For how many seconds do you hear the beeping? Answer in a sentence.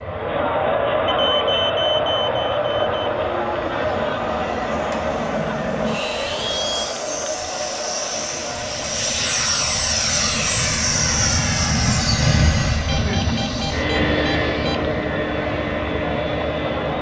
You can hear the beeping for 4 seconds altogether.